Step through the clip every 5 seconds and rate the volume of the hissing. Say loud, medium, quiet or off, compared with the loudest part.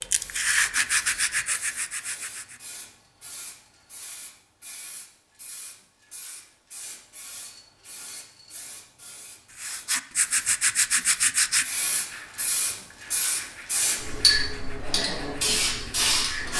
quiet, quiet, loud, loud.